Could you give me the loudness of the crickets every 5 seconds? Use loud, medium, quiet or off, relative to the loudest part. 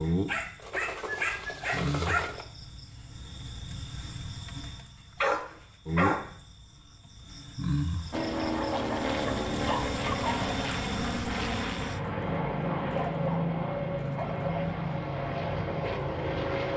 loud, loud, loud, off.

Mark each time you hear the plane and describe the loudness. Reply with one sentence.
The plane can be heard from 8.1 to 16.7 s, at a steady volume.